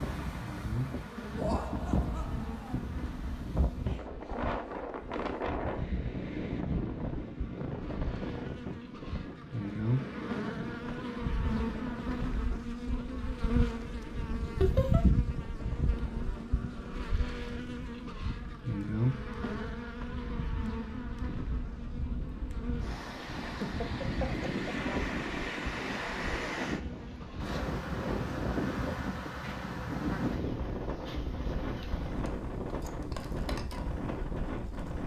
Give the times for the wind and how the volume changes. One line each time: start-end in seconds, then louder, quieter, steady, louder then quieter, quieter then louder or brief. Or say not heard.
0.0-35.0 quieter then louder.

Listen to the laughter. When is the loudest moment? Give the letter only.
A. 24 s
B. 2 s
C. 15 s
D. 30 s
C.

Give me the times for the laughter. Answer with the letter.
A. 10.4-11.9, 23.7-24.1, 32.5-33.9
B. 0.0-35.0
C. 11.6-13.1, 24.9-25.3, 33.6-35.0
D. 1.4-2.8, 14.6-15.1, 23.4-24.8
D.